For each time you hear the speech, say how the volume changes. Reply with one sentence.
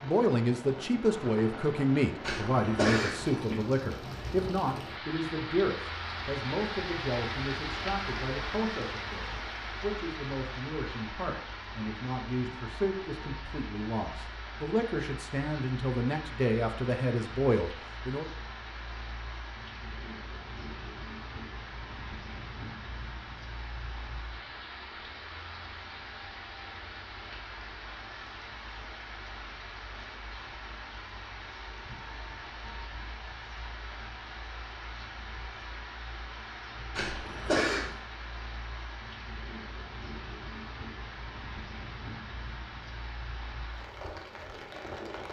The speech can be heard from 0.0 to 18.2 s, getting quieter then louder.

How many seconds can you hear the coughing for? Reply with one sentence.
The coughing can be heard for 2 seconds in total.